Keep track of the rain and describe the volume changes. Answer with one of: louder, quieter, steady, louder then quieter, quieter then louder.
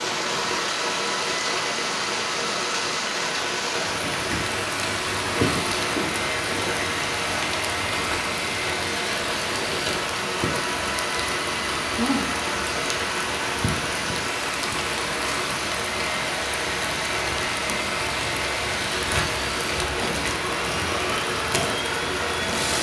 steady.